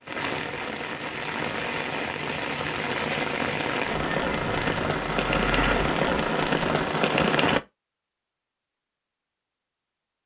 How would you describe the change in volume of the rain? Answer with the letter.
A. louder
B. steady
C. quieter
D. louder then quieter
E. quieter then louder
A.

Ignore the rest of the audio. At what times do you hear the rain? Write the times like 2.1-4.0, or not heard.
0.0-7.6.